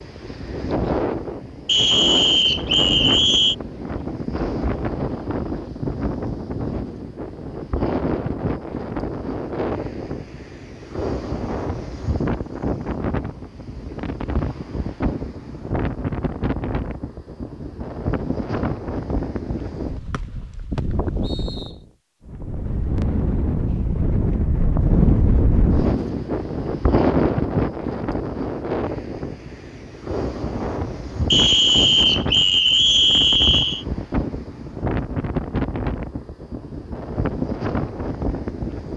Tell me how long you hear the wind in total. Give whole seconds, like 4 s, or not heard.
39 s.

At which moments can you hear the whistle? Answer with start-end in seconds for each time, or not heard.
1.6-3.5, 20.1-21.7, 31.3-33.9.